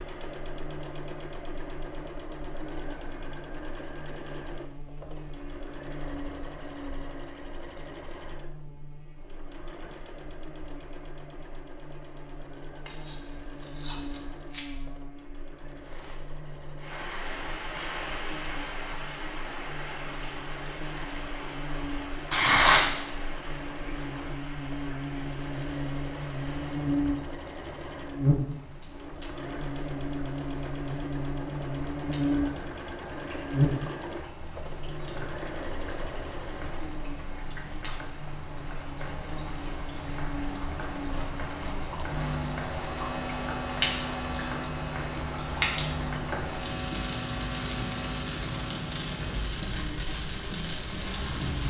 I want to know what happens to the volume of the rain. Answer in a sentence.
The volume of the rain goes down, then up.